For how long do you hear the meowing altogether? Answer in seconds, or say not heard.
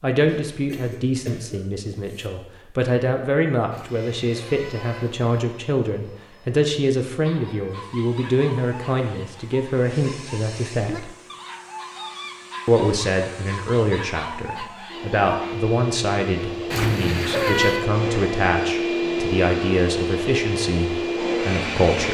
3 s.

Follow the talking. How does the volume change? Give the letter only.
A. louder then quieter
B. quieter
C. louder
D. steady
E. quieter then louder
D.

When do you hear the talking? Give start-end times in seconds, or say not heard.
0.0-11.1, 12.7-22.0.